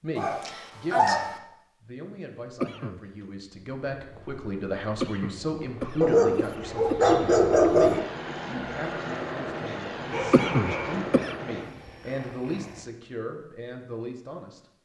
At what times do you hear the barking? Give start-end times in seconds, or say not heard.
0.1-1.4, 6.0-8.0, 10.1-11.0.